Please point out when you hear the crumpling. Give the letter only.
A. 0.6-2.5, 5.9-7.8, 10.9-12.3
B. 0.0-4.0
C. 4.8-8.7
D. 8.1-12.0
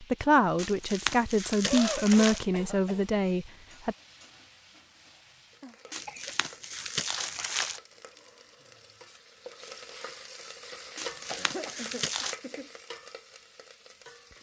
A.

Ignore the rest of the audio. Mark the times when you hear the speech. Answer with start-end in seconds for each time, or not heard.
0.0-4.0.